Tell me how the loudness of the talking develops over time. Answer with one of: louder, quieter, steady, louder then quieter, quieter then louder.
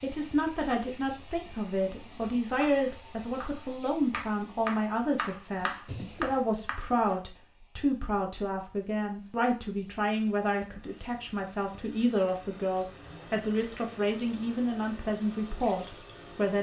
steady.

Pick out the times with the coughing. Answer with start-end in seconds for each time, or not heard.
5.8-6.5.